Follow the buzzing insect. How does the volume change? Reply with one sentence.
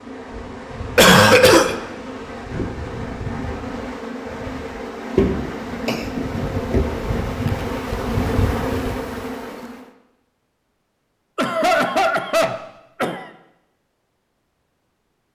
The volume of the buzzing insect goes up.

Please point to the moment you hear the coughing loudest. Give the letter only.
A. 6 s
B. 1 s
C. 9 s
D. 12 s
B.